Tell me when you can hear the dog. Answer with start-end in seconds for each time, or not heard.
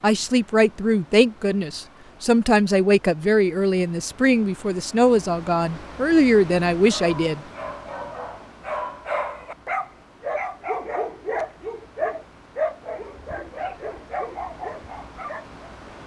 6.8-15.5.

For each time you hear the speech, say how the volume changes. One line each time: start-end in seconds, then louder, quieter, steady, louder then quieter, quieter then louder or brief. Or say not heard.
0.0-7.4 steady.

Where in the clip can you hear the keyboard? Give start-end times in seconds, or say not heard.
not heard.